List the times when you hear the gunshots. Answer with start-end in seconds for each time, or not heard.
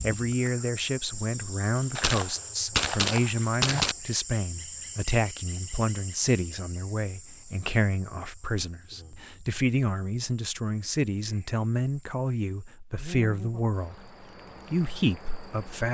1.9-4.0.